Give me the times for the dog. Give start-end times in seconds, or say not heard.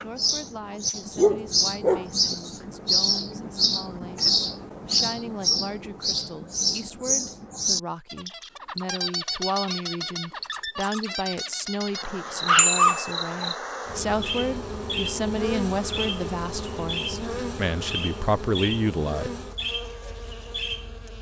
1.1-2.4, 12.0-13.5.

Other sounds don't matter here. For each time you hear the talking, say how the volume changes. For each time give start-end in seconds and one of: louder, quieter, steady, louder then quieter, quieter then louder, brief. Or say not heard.
0.0-19.3 louder.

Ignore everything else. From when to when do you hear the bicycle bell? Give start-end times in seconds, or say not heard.
12.6-13.1.